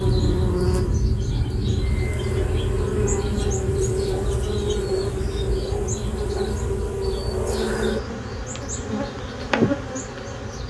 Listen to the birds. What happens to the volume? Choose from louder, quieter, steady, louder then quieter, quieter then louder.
quieter.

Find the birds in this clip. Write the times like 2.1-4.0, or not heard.
0.0-10.6.